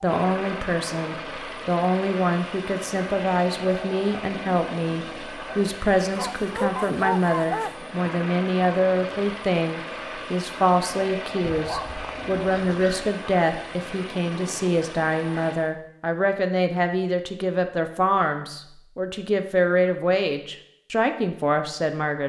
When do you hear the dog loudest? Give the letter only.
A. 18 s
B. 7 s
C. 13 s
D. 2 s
B.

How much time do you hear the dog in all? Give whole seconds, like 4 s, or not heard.
3 s.